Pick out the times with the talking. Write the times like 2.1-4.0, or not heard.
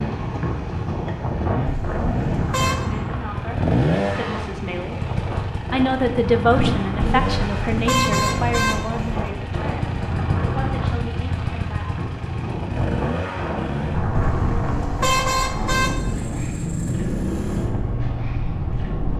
2.8-5.1, 5.7-11.8.